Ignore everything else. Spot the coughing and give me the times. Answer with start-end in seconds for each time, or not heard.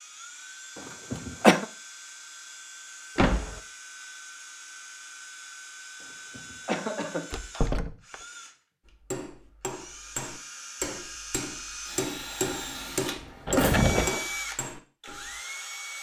1.1-1.6, 6.3-7.8, 13.8-14.2.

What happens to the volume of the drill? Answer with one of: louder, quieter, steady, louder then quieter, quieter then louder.
louder.